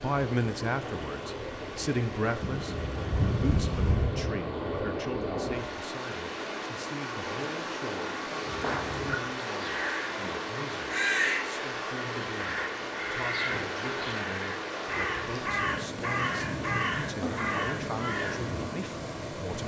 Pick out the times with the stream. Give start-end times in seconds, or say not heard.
0.0-19.6.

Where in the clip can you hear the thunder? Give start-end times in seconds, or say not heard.
2.4-4.5.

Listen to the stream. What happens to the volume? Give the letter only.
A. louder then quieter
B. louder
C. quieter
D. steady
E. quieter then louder
D.